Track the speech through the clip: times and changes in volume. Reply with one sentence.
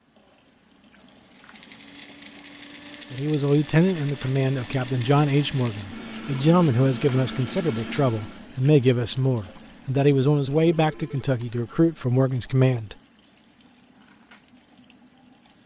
The speech can be heard from 3.1 to 12.9 s, at a steady volume.